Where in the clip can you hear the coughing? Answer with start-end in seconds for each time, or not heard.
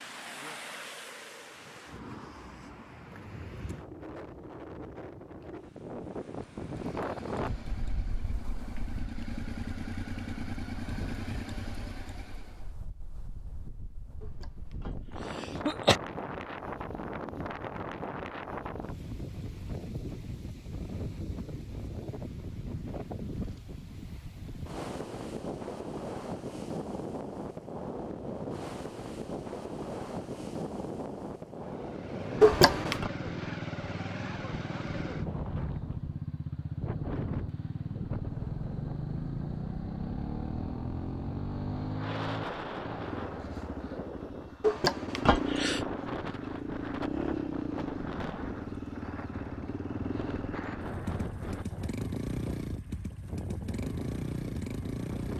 14.8-16.0, 32.4-33.1, 44.6-45.9.